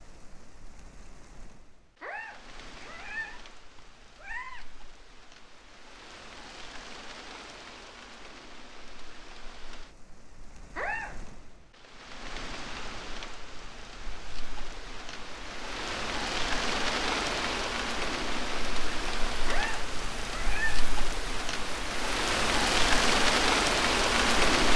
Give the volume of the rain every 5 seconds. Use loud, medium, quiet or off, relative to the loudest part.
quiet, quiet, quiet, medium, loud.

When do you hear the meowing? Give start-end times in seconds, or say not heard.
2.0-4.7, 10.8-11.2, 19.4-20.9.